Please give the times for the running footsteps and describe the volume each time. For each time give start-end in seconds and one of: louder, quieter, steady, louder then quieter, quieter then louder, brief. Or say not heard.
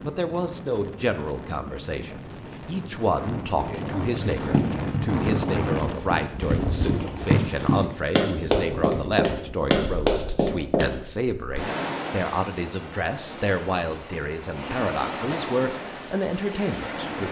4.2-10.9 louder.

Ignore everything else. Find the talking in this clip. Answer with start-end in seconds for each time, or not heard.
0.0-17.2.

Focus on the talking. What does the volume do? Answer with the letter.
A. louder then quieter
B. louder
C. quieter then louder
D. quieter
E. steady
E.